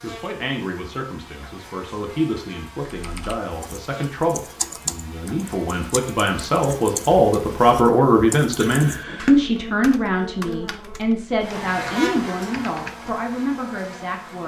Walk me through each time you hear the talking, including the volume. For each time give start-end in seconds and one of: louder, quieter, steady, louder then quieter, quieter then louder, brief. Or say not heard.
0.0-14.4 louder then quieter.